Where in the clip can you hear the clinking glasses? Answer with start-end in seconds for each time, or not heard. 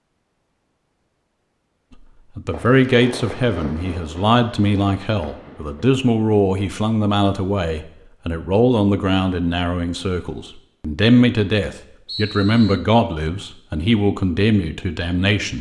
not heard.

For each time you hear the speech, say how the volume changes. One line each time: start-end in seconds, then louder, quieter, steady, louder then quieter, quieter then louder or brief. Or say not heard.
2.4-15.5 steady.